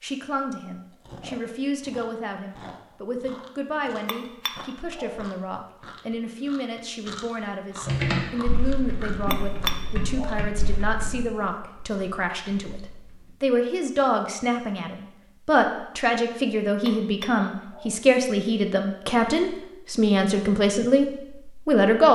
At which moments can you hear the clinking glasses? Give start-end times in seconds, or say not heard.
4.0-5.2, 9.3-10.4, 16.9-17.9.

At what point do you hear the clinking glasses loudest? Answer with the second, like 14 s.
10 s.